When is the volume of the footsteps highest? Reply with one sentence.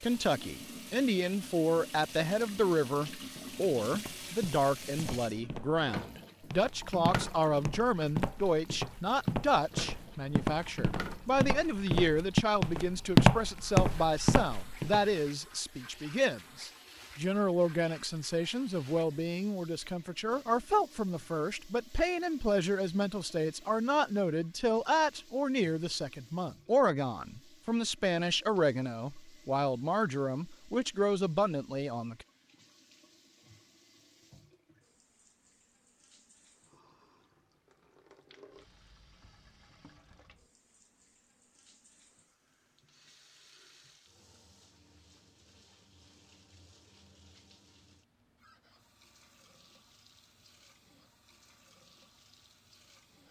The loudest moment of the footsteps is at 13 seconds.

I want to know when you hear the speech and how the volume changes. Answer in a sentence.
You can hear the speech from 0.0 to 32.2 s, at a steady volume.